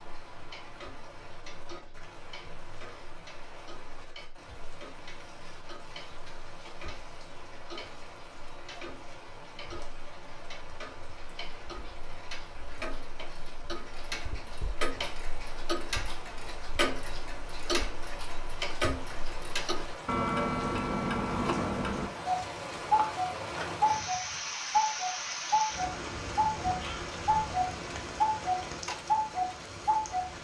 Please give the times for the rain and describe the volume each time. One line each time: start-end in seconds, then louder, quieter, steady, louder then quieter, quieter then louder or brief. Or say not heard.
0.0-30.3 louder.